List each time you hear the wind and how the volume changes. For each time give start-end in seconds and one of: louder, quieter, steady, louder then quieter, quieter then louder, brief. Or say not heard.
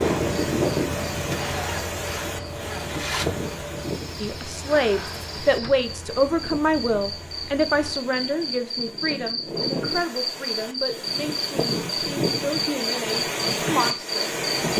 0.0-14.7 quieter then louder.